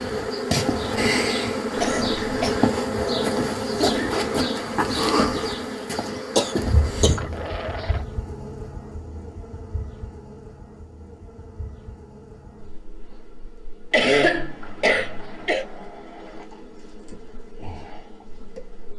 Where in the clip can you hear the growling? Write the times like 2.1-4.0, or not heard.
3.8-4.3, 7.2-8.1, 14.6-16.6.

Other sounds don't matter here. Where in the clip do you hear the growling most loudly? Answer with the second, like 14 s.
4 s.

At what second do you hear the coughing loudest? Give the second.
14 s.